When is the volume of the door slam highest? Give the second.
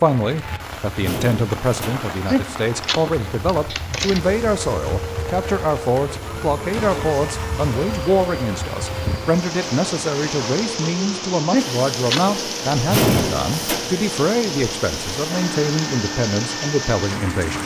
13 s.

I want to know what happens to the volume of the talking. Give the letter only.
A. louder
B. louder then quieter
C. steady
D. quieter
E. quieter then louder
C.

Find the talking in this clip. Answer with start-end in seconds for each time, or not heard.
0.0-17.6.